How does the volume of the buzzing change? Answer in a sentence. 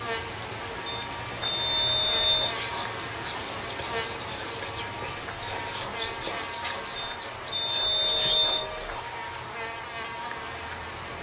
The volume of the buzzing stays about the same.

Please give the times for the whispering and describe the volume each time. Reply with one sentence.
You can hear the whispering from 1.4 to 9.1 s, at a steady volume.